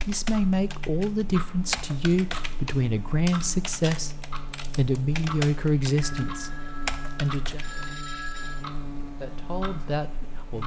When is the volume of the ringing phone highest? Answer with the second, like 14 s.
8 s.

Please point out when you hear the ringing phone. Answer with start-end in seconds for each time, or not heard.
6.0-8.7.